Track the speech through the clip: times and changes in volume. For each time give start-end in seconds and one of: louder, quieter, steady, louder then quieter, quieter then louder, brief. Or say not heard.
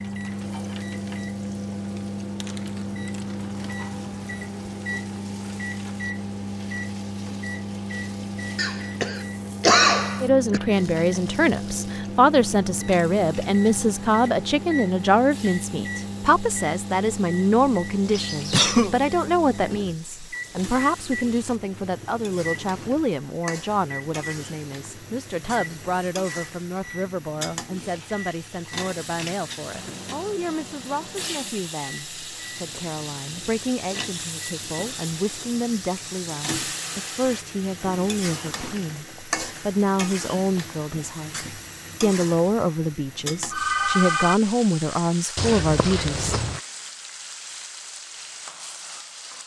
10.2-46.4 quieter then louder.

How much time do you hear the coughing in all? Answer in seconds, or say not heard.
4 s.